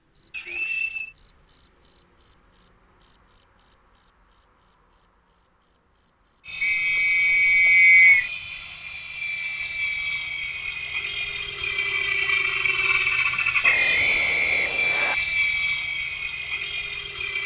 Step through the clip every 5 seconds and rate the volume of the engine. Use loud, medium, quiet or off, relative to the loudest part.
off, medium, loud, loud.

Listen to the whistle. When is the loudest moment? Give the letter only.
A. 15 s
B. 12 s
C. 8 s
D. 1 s
C.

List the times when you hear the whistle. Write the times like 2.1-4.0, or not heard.
0.3-1.1, 6.6-8.3, 13.6-15.2.